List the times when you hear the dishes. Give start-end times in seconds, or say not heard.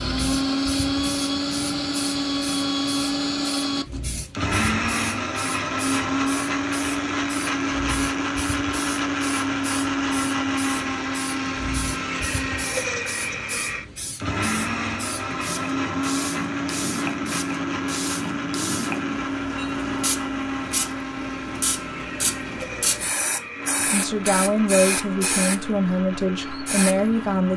not heard.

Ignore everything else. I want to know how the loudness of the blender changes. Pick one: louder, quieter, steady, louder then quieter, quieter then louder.
quieter.